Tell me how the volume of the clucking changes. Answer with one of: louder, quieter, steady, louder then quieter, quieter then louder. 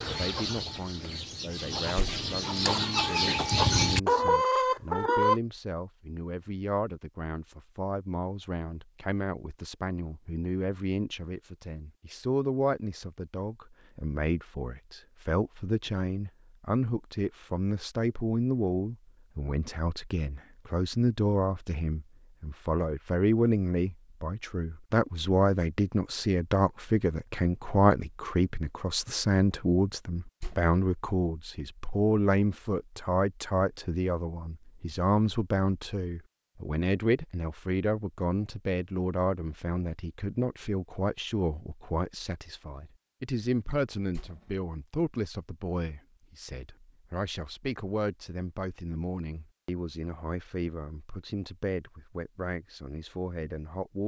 louder.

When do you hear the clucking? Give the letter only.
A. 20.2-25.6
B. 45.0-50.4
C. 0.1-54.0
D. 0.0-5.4
D.